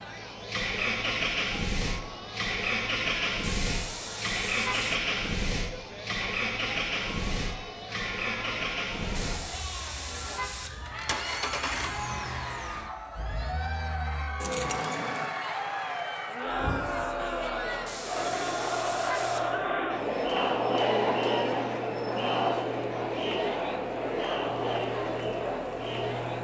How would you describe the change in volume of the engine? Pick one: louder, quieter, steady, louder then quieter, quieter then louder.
quieter.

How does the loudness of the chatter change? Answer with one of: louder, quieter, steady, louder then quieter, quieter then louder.
louder.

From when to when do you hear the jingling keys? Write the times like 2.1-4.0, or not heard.
14.4-15.3.